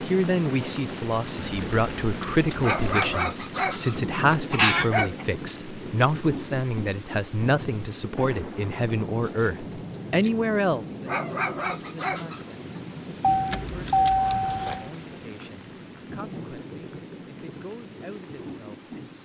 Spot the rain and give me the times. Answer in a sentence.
The rain can be heard from 0.0 to 19.2 s.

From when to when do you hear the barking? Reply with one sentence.
The barking can be heard from 2.6 to 5.2 s and from 11.1 to 12.6 s.